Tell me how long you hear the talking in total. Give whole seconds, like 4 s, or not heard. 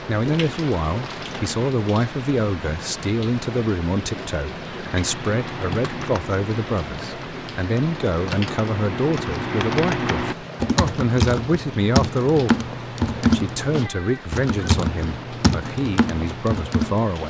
17 s.